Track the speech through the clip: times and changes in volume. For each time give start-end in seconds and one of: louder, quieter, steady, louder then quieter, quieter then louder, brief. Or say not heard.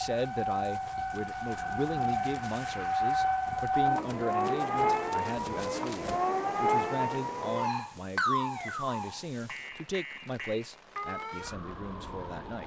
0.0-12.6 steady.